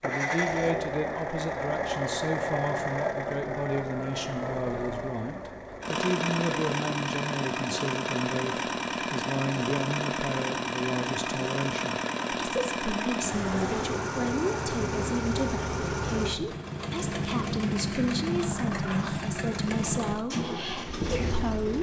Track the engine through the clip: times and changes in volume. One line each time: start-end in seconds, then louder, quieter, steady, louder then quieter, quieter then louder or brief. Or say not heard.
0.0-21.7 steady.